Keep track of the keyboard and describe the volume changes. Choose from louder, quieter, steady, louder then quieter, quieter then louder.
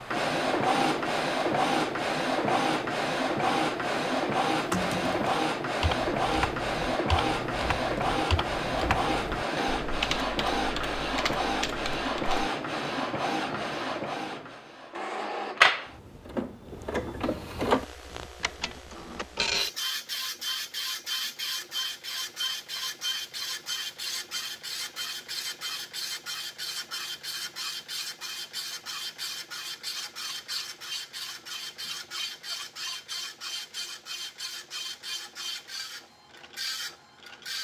steady.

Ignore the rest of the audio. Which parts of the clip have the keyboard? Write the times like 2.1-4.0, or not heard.
4.5-12.4.